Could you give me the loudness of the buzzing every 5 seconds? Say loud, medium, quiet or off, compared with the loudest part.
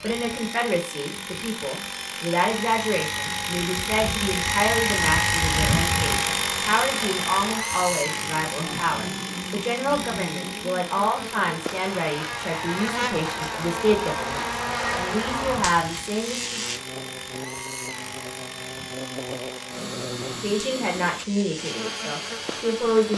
off, medium, loud, loud, medium.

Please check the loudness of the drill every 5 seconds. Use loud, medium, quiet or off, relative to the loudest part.
loud, loud, medium, medium, medium.